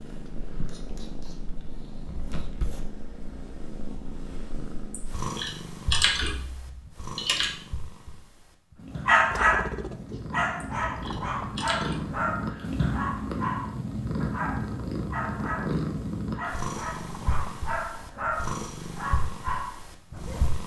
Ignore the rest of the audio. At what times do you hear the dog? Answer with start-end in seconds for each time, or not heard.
9.1-20.6.